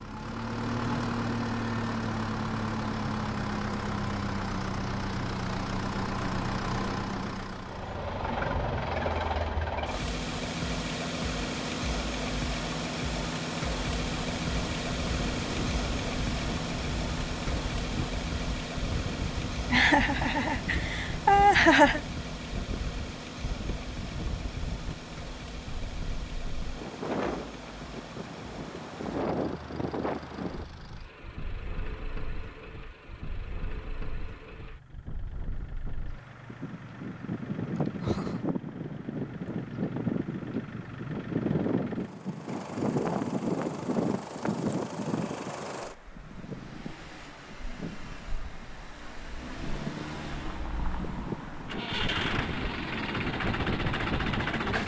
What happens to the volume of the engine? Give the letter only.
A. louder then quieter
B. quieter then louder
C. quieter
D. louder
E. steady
B.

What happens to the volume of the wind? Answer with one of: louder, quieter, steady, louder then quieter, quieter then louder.
louder then quieter.